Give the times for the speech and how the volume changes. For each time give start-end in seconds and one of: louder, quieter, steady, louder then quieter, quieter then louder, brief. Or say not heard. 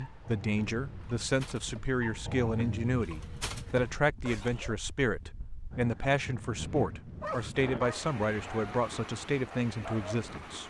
0.0-10.6 steady.